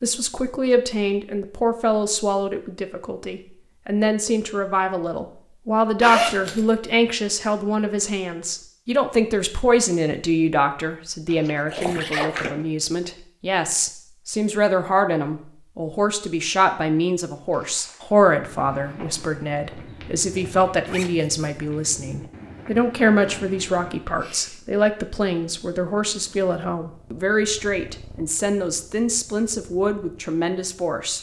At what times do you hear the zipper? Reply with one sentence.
You can hear the zipper from 6.0 to 6.7 s, from 11.3 to 12.7 s and from 20.9 to 21.3 s.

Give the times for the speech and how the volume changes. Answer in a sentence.
The speech can be heard from 0.0 to 31.1 s, at a steady volume.